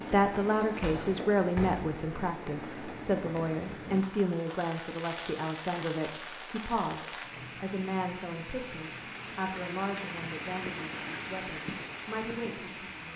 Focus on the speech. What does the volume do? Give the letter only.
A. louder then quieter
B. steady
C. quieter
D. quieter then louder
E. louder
C.